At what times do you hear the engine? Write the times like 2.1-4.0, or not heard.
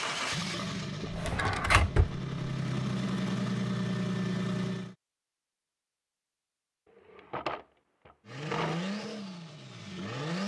0.0-5.0, 8.2-10.4.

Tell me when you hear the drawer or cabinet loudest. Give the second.
2 s.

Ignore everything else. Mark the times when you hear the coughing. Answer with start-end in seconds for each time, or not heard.
not heard.